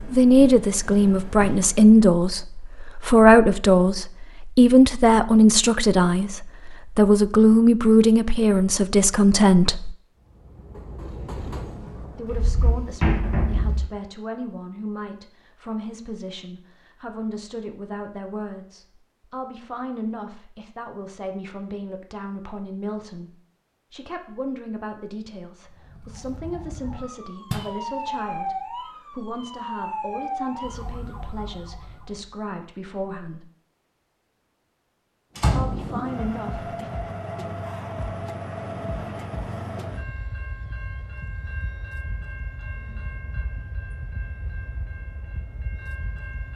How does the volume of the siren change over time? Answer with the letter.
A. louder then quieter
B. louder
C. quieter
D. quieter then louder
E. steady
A.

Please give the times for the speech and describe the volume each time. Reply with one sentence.
You can hear the speech from 0.0 to 9.9 s, at a steady volume; from 12.1 to 33.5 s, at a steady volume; and briefly from 35.5 to 36.9 s.